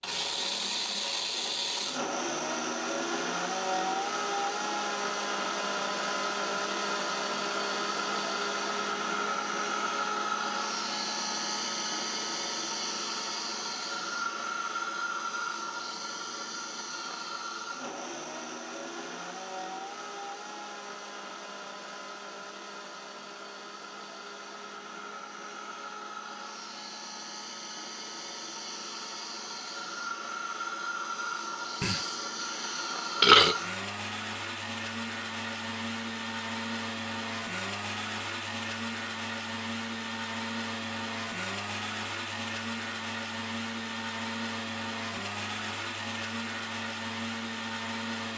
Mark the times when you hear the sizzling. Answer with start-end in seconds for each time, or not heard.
not heard.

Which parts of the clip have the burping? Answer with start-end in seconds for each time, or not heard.
31.8-33.5.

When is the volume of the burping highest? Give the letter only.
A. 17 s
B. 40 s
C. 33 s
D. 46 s
C.